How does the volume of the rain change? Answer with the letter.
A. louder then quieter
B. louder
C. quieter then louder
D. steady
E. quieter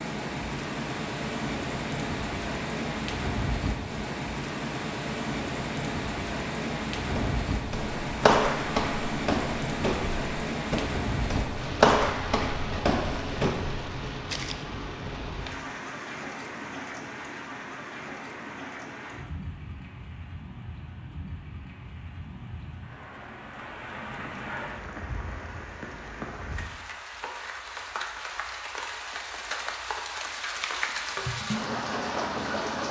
C.